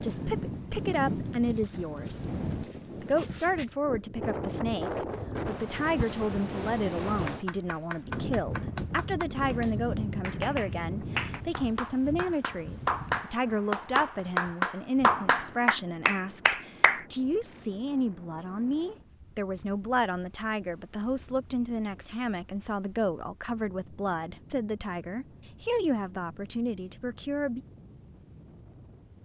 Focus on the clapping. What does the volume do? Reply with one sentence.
The volume of the clapping goes up.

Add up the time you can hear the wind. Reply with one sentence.
You can hear the wind for 29 seconds altogether.